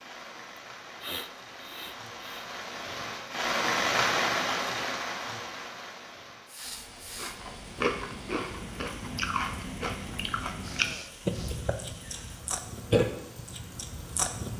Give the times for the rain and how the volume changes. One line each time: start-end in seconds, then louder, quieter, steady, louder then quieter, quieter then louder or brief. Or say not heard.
0.0-14.5 louder then quieter.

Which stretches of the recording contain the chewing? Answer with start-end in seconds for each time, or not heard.
7.2-14.5.